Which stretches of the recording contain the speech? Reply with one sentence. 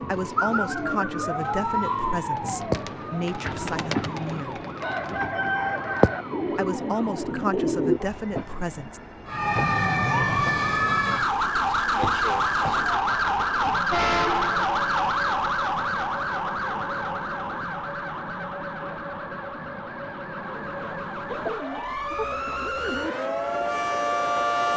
You can hear the speech from 0.0 to 4.7 s and from 6.5 to 9.0 s.